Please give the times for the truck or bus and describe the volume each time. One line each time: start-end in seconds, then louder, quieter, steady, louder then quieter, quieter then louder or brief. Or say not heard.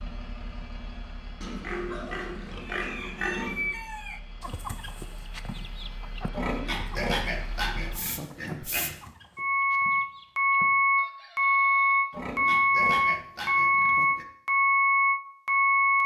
0.0-16.0 louder.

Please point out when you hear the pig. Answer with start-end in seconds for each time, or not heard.
1.4-3.8, 6.3-9.1, 12.1-14.2.